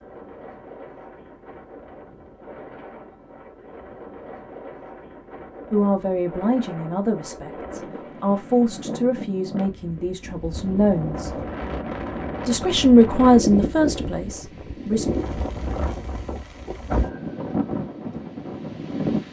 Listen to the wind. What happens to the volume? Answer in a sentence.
The volume of the wind goes up.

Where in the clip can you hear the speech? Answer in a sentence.
The speech can be heard from 5.7 to 11.4 s and from 12.4 to 15.1 s.